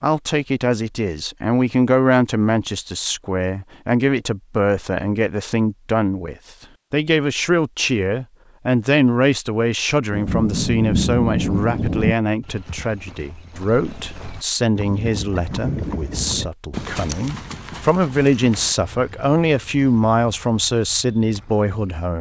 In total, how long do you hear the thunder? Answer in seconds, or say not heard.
2 s.